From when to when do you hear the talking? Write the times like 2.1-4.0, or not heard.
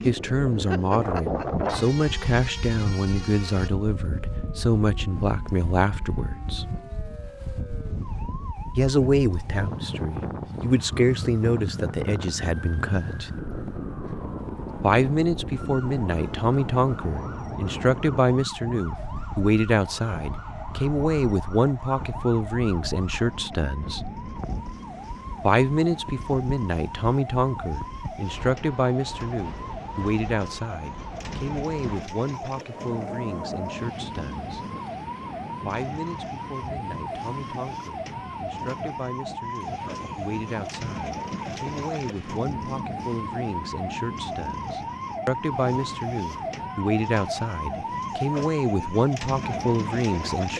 0.1-6.7, 8.8-13.3, 14.8-24.1, 25.4-34.5, 35.6-50.5.